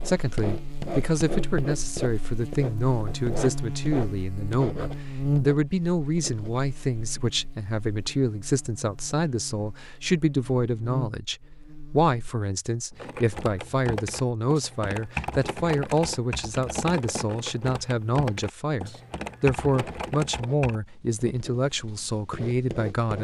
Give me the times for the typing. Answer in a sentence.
The typing can be heard from 12.9 to 20.8 s.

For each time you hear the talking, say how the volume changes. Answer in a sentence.
You can hear the talking from 0.0 to 23.1 s, at a steady volume.